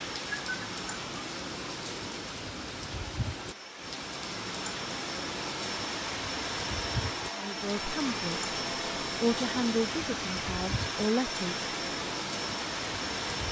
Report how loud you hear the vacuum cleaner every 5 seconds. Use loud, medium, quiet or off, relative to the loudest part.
medium, loud, loud.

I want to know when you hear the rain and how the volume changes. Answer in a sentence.
The rain can be heard from 0.0 to 13.4 s, at a steady volume.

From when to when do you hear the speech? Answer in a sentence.
You can hear the speech from 7.3 to 11.7 s.